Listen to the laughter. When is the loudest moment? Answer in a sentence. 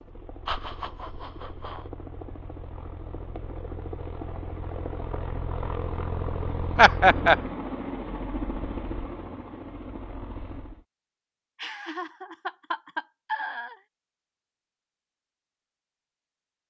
The loudest moment of the laughter is at 7 seconds.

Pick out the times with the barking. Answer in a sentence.
You can't hear the barking here.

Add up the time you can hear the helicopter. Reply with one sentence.
You can hear the helicopter for 11 seconds altogether.